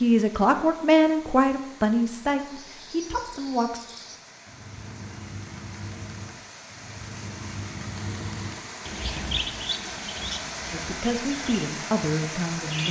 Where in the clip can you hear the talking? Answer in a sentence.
The talking can be heard from 0.0 to 3.8 s and from 10.7 to 12.8 s.